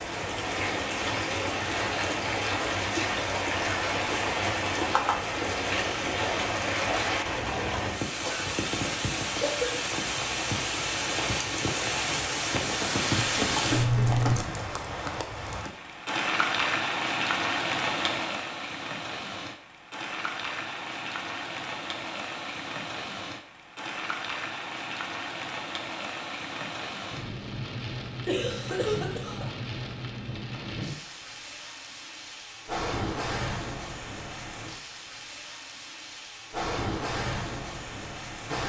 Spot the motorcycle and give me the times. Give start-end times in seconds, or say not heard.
not heard.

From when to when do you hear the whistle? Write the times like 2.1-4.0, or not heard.
not heard.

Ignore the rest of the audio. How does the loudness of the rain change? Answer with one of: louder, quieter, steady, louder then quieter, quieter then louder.
quieter.